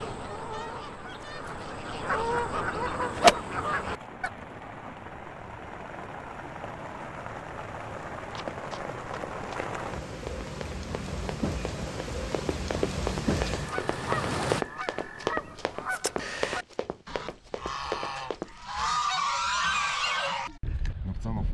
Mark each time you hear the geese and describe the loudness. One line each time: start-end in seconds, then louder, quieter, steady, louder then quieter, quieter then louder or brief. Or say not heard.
0.0-4.3 louder
13.4-21.4 louder.